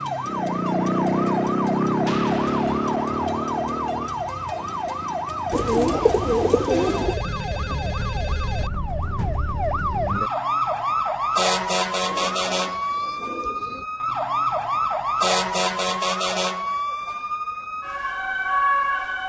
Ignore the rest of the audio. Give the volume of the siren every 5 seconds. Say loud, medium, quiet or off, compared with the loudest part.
loud, medium, loud, loud.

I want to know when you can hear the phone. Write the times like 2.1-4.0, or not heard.
6.7-8.7.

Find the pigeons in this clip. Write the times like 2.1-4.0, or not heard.
5.5-7.2, 12.1-13.8.